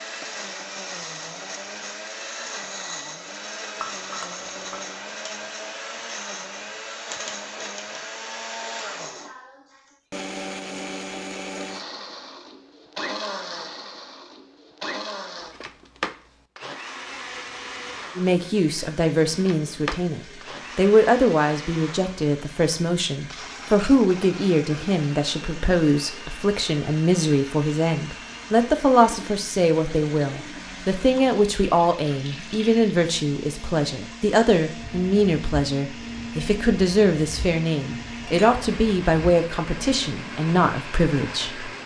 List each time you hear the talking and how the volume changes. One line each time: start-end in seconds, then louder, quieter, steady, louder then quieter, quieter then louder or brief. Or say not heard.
18.1-41.7 steady.